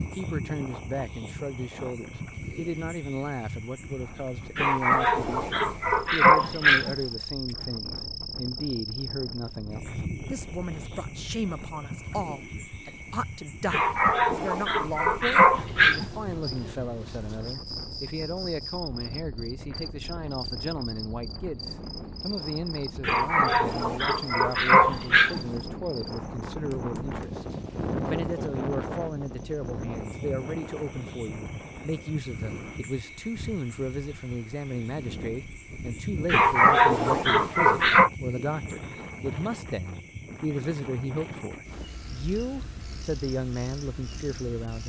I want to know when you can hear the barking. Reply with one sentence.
You can hear the barking from 4.5 to 7.0 s, from 13.7 to 16.1 s, from 23.0 to 25.4 s and from 36.2 to 38.1 s.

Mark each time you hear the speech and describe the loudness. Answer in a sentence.
The speech can be heard from 0.0 to 44.8 s, at a steady volume.